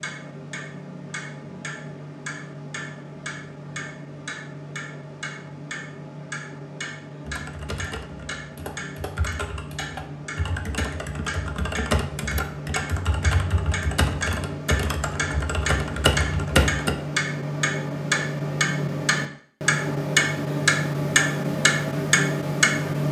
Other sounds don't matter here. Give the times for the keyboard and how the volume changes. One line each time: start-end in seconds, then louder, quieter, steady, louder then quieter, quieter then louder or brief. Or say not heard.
7.2-16.9 louder.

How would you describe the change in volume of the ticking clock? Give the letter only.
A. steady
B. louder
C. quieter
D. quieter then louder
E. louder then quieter
B.